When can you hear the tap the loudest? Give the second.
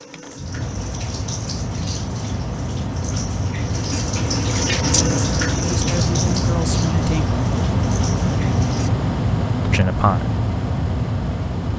5 s.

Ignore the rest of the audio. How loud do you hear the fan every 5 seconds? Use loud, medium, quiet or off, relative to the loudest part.
medium, loud, loud.